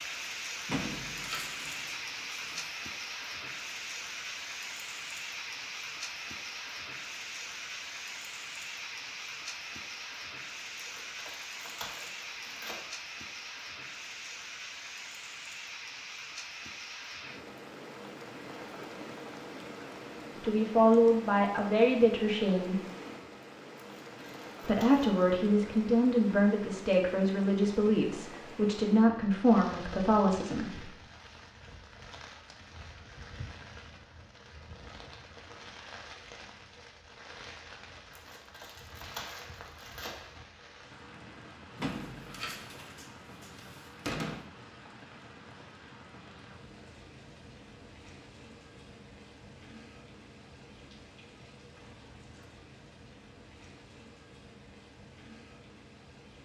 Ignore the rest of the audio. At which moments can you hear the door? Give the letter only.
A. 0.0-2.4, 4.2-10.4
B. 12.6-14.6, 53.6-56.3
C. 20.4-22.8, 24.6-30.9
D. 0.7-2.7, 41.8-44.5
D.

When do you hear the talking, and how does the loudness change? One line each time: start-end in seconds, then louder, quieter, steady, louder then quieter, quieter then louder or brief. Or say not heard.
20.4-22.8 brief
24.6-30.9 steady.